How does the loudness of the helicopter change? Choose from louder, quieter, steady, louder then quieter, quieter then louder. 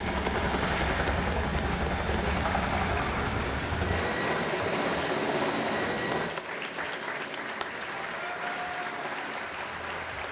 quieter.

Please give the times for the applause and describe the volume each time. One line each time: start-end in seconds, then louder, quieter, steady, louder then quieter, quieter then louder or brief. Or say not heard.
0.0-10.2 steady.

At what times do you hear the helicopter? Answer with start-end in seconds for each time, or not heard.
0.0-10.2.